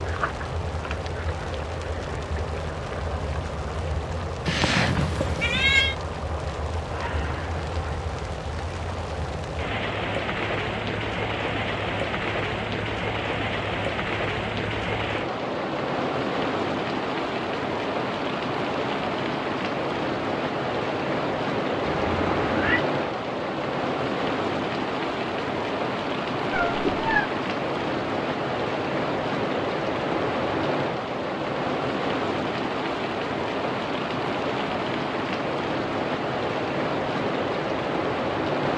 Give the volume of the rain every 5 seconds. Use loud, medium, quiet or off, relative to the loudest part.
medium, medium, loud, loud, loud, loud, loud, loud.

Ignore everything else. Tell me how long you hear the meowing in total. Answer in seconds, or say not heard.
3 s.